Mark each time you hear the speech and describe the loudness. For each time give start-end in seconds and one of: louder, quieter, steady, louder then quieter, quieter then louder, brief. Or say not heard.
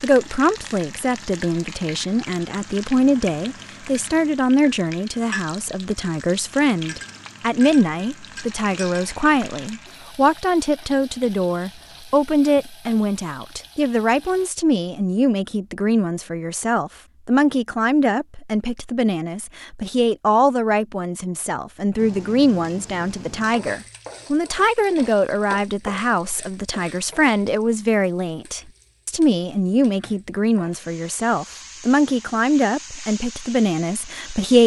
0.0-34.6 steady.